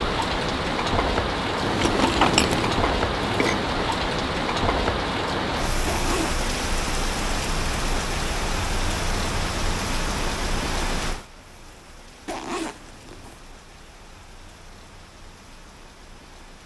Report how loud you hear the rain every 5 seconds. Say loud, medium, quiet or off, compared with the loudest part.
loud, loud, medium, quiet.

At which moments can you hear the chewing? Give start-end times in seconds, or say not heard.
1.6-3.6.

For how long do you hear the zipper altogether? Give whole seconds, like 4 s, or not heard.
2 s.